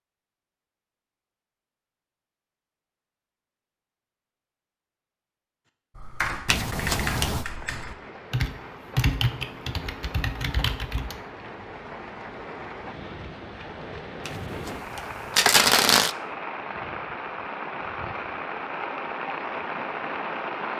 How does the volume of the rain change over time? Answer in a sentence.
The loudness of the rain goes up.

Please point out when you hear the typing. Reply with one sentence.
You can hear the typing from 6.0 to 11.2 s.